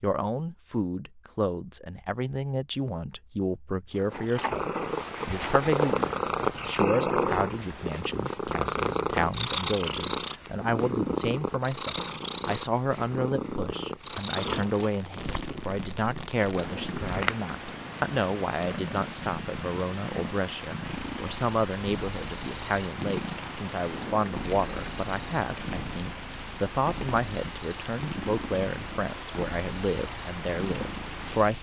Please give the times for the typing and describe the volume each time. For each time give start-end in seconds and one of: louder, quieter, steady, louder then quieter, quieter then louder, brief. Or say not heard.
not heard.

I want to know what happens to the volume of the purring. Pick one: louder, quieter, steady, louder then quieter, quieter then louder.
quieter.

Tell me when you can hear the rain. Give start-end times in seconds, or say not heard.
14.0-31.5.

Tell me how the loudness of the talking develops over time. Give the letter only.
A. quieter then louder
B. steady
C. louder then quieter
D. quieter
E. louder
B.